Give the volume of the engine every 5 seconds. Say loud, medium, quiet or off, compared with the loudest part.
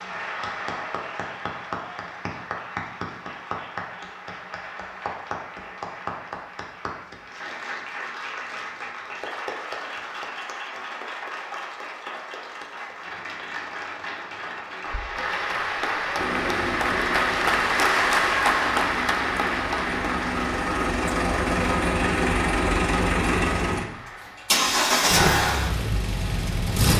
off, off, off, medium, loud, loud.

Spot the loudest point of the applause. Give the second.
18 s.